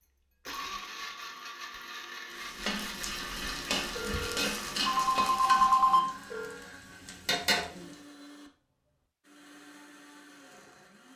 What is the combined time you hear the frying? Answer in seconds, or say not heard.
6 s.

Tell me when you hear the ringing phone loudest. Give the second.
6 s.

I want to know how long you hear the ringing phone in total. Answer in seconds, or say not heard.
3 s.